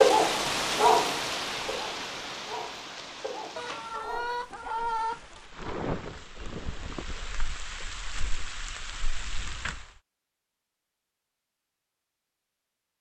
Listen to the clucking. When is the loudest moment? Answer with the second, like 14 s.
5 s.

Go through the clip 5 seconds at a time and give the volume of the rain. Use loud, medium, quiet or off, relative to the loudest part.
loud, medium, off.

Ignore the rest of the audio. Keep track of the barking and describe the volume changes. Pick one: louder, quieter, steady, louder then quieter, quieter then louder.
quieter.